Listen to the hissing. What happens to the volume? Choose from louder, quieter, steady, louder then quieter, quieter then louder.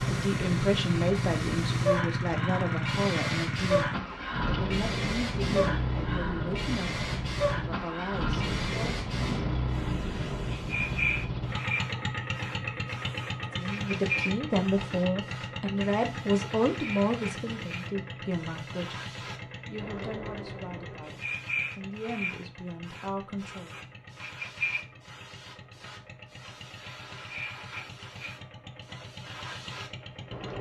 quieter.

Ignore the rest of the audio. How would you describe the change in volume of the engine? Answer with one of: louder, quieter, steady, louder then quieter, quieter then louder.
quieter.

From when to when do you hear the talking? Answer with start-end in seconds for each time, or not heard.
0.0-9.1, 13.6-23.8.